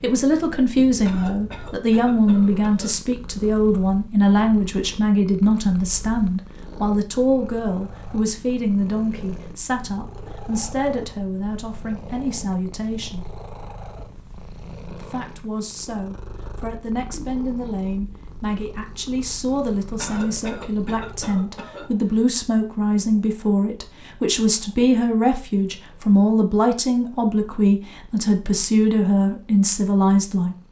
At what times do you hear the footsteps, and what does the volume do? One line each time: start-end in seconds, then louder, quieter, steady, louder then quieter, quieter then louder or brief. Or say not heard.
not heard.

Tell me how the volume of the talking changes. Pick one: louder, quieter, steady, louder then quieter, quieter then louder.
quieter then louder.